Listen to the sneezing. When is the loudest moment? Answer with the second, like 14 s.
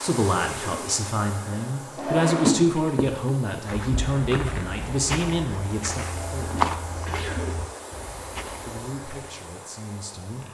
7 s.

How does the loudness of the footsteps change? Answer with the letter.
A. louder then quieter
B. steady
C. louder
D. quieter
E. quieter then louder
A.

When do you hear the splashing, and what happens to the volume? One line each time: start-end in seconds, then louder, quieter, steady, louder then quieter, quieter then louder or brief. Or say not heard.
not heard.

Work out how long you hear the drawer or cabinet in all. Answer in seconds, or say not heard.
2 s.